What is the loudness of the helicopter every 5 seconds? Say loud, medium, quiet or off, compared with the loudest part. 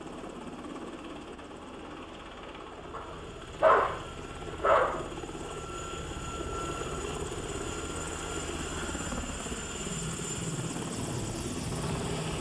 medium, loud, loud.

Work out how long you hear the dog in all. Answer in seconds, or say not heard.
3 s.